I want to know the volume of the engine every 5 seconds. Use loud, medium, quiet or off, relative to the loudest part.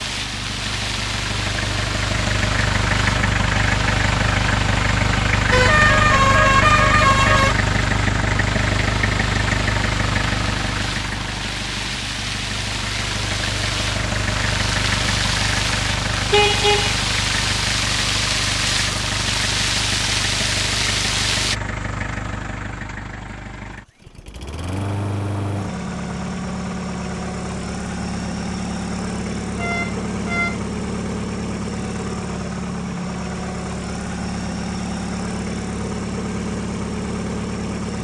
loud, loud, medium, medium, medium, medium, medium, medium.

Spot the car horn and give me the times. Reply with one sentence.
The car horn can be heard from 5.5 to 7.5 s, from 16.3 to 16.9 s and from 29.6 to 30.6 s.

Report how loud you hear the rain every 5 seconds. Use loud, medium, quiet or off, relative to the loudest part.
medium, medium, medium, loud, loud, off, off, off.